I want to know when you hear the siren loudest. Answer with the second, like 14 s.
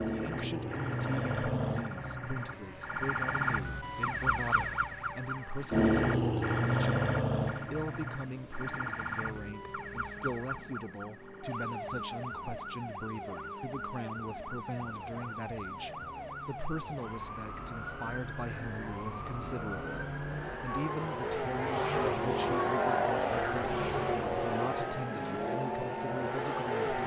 6 s.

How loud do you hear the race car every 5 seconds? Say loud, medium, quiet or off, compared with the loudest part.
quiet, quiet, quiet, quiet, loud, loud.